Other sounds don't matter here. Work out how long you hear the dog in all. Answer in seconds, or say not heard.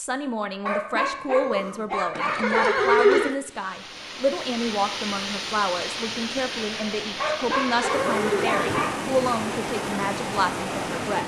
4 s.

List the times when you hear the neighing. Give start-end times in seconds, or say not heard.
2.1-3.4, 7.6-8.8.